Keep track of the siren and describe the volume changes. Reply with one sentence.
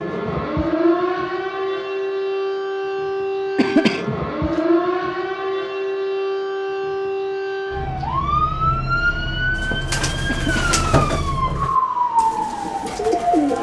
The volume of the siren stays about the same.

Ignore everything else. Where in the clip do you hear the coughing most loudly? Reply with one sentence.
The loudest moment of the coughing is at 4 seconds.